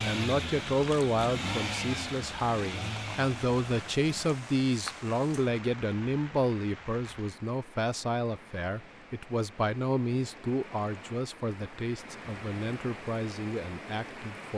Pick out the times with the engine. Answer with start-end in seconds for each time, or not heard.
0.0-4.4.